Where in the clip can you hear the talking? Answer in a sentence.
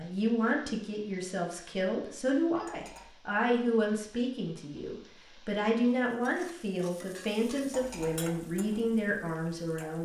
The talking can be heard from 0.0 to 9.9 s.